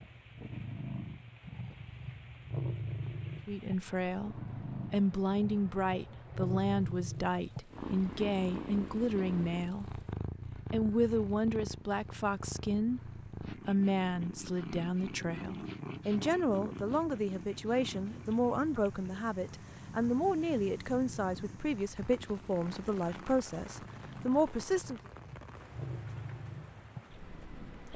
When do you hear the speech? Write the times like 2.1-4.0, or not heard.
3.5-10.0, 10.7-25.0.